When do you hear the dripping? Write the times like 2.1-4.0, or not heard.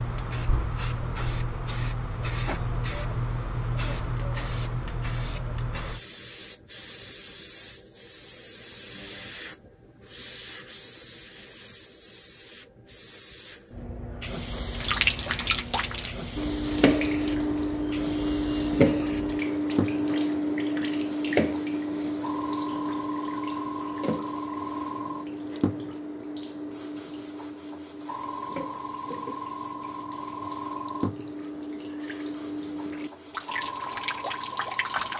14.7-35.1.